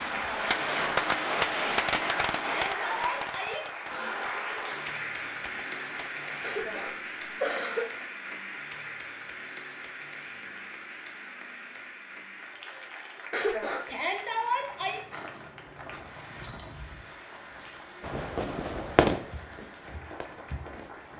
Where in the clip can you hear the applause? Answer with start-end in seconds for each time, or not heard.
0.0-21.1.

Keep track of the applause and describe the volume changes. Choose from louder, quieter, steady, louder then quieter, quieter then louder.
quieter.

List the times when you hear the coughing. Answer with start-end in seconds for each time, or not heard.
6.4-8.1, 13.3-13.9.